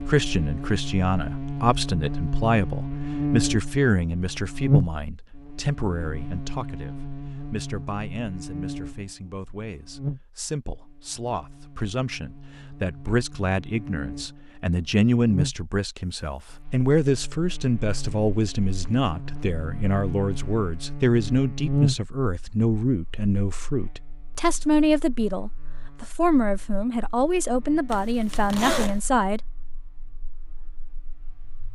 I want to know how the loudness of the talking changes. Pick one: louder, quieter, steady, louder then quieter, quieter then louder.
quieter then louder.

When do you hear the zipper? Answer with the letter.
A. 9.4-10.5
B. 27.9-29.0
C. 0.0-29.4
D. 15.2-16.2
B.